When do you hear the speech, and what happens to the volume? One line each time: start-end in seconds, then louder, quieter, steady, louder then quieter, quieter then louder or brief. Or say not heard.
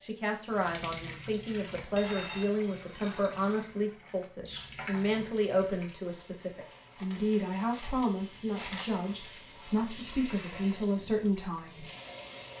0.0-11.8 steady.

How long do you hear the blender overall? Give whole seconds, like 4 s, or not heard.
not heard.